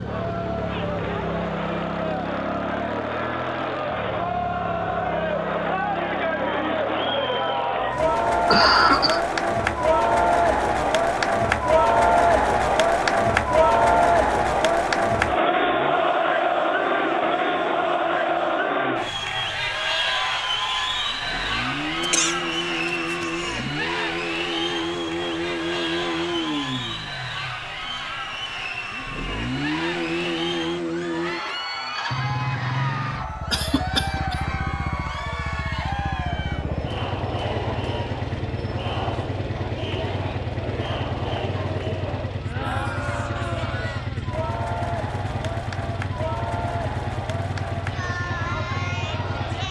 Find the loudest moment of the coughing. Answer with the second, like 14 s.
9 s.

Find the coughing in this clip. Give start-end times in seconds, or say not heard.
8.4-9.2, 22.0-23.7, 33.5-34.4.